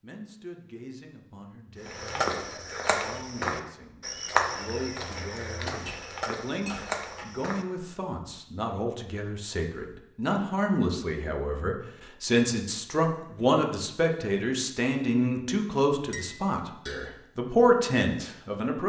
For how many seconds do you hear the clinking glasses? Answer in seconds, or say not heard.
2 s.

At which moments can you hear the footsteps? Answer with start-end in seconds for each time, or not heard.
1.9-7.8.